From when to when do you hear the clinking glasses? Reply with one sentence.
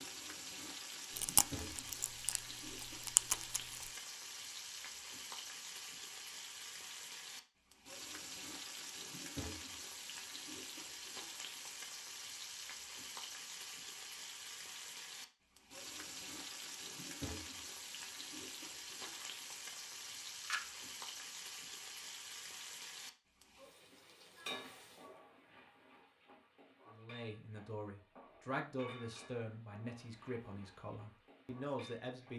You can't hear the clinking glasses here.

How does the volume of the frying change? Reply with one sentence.
The loudness of the frying goes down.